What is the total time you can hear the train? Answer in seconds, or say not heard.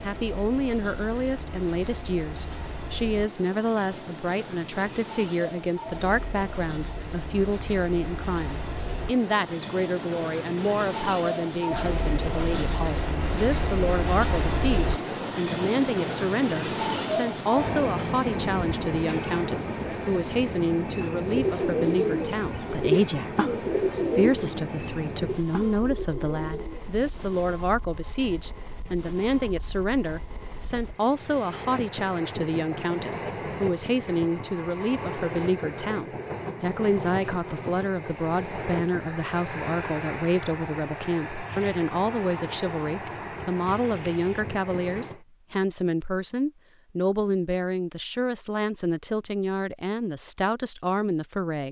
45 s.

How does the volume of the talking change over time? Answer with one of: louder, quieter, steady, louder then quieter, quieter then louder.
steady.